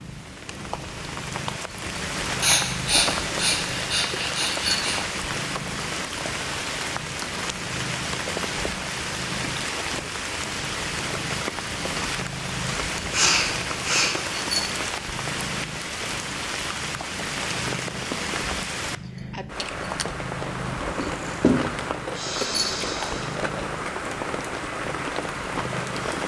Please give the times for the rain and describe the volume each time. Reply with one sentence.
You can hear the rain from 0.0 to 26.2 s, at a steady volume.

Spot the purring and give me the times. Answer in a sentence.
The purring can be heard from 0.0 to 26.2 s.